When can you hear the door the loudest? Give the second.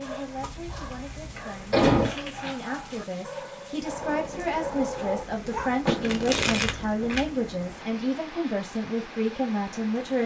2 s.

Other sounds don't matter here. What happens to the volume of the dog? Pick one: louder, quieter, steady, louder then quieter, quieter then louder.
louder.